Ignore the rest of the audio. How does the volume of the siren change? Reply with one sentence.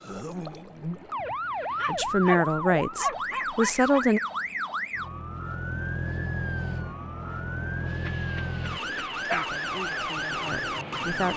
The volume of the siren stays about the same.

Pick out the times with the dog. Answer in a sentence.
You can hear the dog from 1.1 to 4.0 s and from 8.1 to 9.5 s.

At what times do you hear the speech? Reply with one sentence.
The speech can be heard from 1.9 to 4.2 s and from 9.2 to 11.3 s.